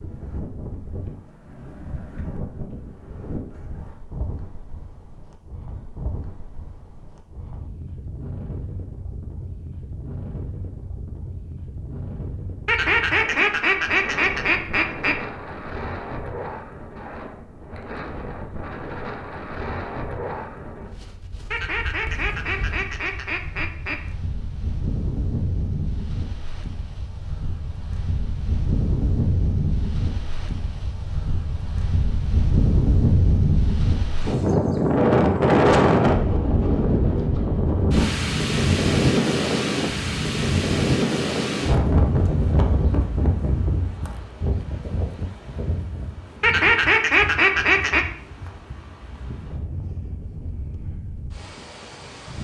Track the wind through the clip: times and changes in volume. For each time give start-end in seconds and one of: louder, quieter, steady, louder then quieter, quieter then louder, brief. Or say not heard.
0.0-52.3 louder then quieter.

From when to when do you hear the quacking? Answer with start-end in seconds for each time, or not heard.
12.7-15.2, 21.5-23.9, 46.4-48.0.